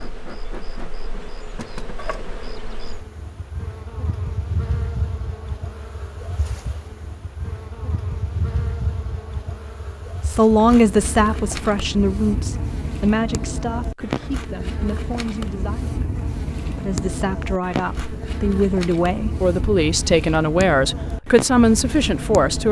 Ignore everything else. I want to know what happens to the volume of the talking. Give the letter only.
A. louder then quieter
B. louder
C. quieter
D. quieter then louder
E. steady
D.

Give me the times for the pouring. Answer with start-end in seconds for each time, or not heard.
not heard.